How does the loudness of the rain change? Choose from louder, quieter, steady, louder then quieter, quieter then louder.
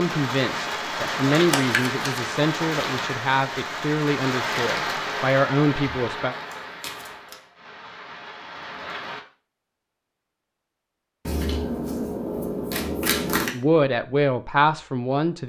quieter.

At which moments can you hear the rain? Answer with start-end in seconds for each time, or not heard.
0.0-9.2.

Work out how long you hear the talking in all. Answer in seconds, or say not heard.
8 s.